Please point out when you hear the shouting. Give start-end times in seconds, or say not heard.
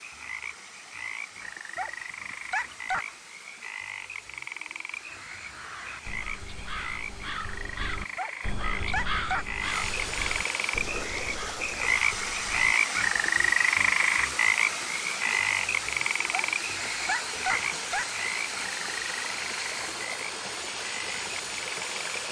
not heard.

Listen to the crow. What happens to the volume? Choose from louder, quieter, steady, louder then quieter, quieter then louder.
louder then quieter.